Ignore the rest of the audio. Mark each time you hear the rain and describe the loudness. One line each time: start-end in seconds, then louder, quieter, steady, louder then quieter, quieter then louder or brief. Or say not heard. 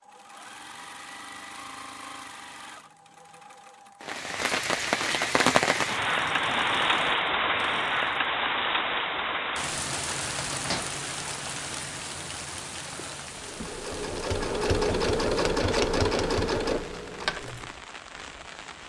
4.0-18.8 quieter.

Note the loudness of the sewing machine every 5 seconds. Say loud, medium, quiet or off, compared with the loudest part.
quiet, quiet, loud, loud.